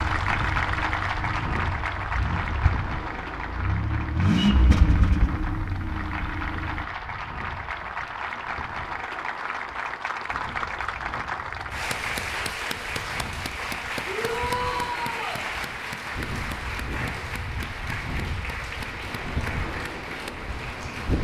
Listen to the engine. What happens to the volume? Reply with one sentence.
The volume of the engine goes up, then down.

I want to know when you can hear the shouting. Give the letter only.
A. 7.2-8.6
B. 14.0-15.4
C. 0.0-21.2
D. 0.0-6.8
B.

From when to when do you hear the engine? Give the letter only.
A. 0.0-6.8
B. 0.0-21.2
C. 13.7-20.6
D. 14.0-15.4
A.